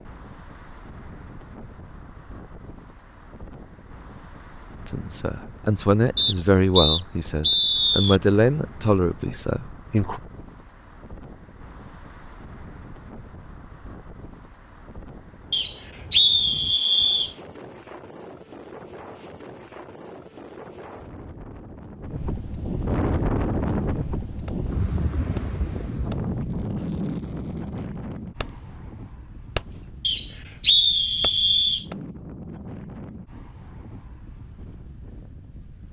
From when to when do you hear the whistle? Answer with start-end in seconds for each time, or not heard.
6.2-8.2, 15.5-17.3, 30.0-31.9.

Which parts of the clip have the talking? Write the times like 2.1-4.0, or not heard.
4.8-10.2.